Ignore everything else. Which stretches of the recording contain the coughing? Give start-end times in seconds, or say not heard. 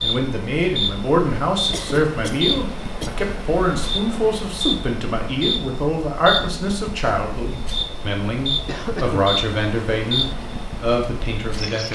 1.7-3.1, 8.7-9.3.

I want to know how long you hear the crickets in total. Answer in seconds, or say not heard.
12 s.